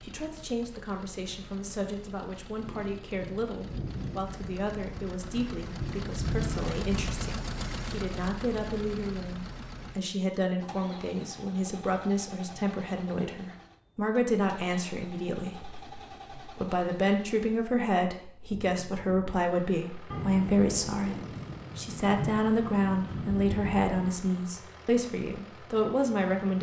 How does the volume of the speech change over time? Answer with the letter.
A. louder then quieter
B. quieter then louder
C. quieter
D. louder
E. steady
D.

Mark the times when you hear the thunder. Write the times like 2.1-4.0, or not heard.
2.5-7.3, 20.1-24.1.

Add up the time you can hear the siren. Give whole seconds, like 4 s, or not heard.
not heard.